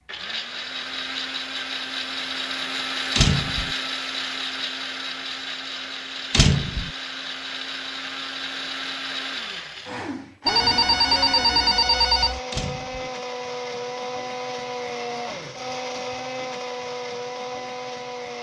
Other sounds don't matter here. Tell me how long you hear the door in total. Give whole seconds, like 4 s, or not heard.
2 s.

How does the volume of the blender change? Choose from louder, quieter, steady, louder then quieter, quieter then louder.
steady.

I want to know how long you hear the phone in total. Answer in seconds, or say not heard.
2 s.